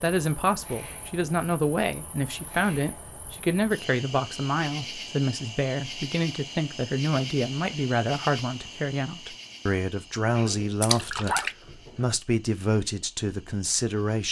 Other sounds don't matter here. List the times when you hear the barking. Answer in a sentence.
The barking can be heard from 10.3 to 12.2 s.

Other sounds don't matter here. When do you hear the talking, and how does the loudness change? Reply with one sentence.
You can hear the talking from 0.0 to 14.2 s, at a steady volume.